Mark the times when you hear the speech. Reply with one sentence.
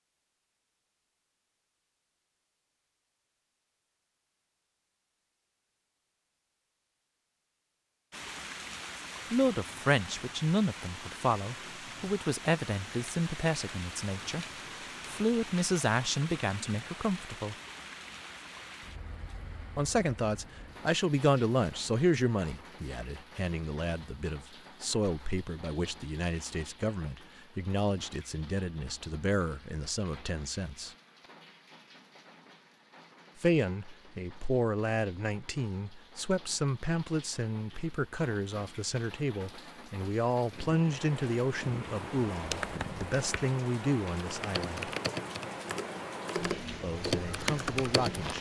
You can hear the speech from 9.3 to 14.4 s, from 15.1 to 17.6 s, from 19.8 to 30.9 s, from 33.4 to 44.9 s and from 46.8 to 48.3 s.